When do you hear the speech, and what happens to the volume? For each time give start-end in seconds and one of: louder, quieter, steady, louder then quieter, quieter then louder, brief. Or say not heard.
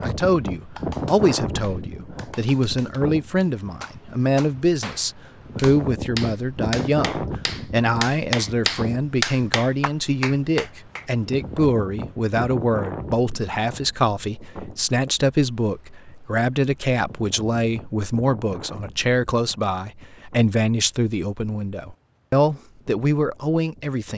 0.0-24.1 steady.